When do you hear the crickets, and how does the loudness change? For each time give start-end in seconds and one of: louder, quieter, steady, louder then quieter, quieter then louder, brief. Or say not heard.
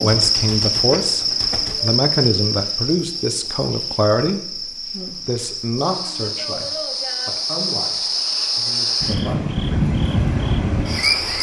0.0-11.3 quieter then louder.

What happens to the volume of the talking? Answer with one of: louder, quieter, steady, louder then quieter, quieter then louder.
quieter.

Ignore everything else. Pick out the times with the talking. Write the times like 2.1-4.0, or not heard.
0.0-9.6.